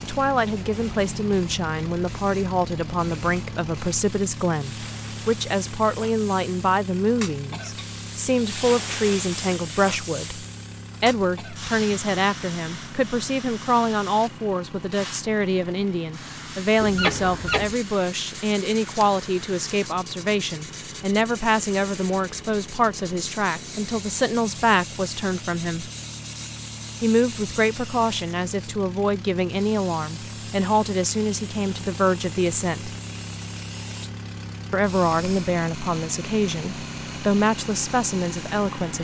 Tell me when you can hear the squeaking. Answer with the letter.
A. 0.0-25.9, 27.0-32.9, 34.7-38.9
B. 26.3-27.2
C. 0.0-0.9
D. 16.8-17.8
D.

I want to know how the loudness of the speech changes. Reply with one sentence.
The volume of the speech stays about the same.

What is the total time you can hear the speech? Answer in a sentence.
The speech can be heard for 36 seconds in total.